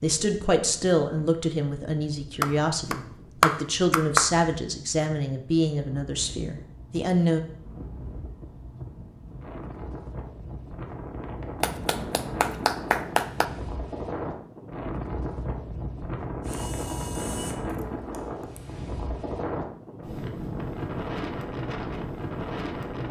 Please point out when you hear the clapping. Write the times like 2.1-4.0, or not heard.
2.4-4.3, 11.6-13.4.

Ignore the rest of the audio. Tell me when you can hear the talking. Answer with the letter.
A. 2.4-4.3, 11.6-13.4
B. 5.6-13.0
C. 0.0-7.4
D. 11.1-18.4
C.